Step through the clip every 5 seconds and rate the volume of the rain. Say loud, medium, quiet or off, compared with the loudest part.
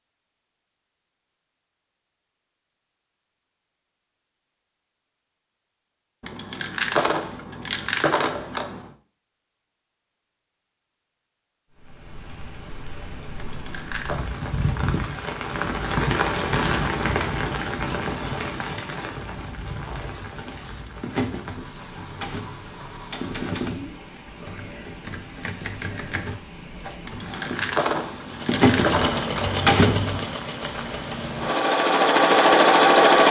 off, off, medium, loud, quiet, quiet, quiet.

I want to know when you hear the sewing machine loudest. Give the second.
33 s.